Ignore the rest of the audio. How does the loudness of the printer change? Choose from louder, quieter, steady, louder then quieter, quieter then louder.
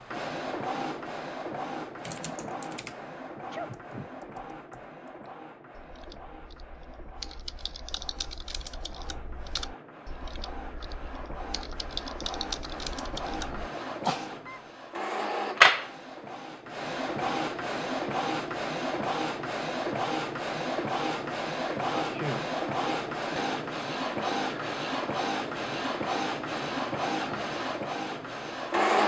quieter then louder.